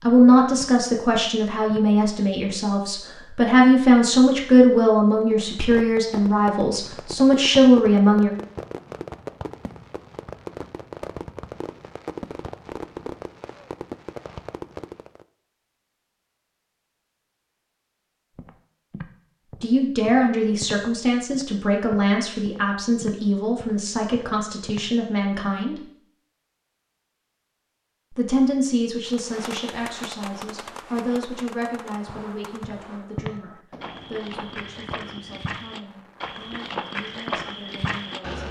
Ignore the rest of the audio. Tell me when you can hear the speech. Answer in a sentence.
The speech can be heard from 0.0 to 8.3 s, from 19.6 to 25.8 s and from 28.1 to 38.4 s.